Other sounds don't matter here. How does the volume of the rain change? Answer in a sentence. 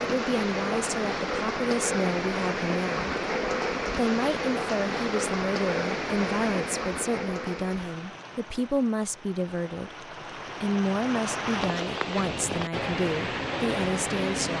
The volume of the rain goes down, then up.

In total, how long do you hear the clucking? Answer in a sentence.
The clucking can't be heard in this clip.